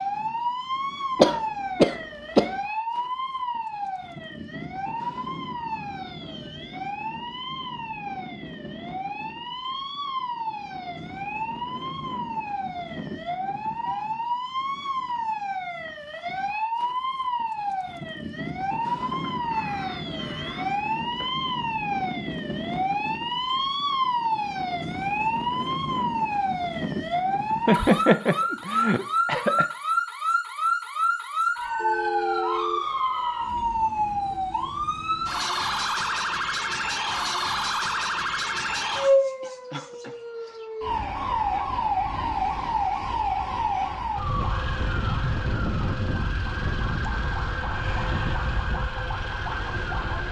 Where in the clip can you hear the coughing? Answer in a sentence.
You can hear the coughing from 1.1 to 2.5 s, from 27.6 to 29.6 s and from 39.4 to 40.6 s.